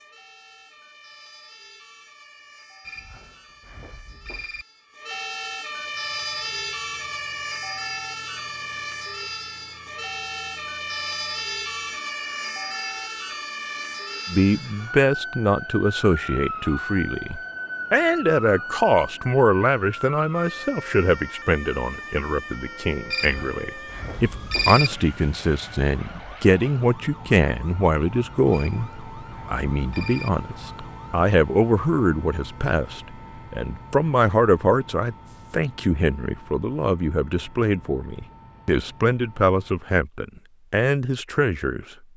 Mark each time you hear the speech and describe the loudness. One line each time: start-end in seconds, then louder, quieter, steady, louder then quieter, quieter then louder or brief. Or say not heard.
14.2-41.9 steady.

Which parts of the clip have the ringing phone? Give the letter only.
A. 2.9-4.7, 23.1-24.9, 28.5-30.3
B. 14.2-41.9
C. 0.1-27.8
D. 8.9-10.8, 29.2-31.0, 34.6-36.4
A.